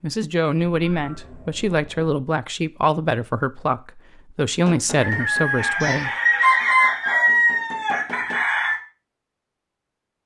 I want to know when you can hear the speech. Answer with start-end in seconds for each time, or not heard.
0.0-6.1.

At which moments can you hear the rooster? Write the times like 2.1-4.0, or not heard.
5.0-8.8.